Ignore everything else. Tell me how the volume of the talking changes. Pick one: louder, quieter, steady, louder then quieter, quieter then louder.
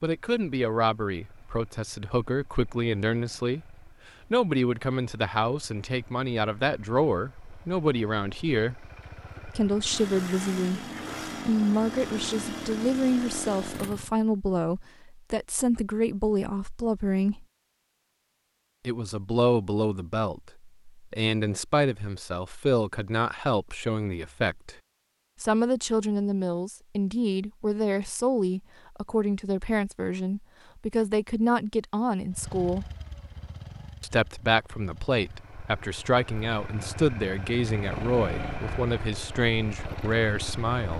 steady.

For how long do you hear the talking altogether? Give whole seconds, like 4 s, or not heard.
37 s.